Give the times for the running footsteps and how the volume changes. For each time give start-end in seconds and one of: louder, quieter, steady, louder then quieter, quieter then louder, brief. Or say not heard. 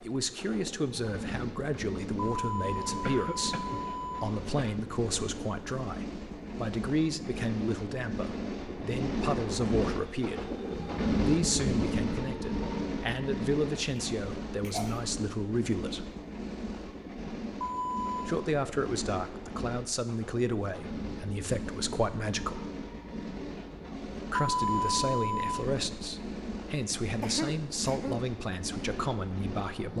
not heard.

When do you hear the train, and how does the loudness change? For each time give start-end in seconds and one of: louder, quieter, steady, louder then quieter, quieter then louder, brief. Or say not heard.
0.0-29.9 louder then quieter.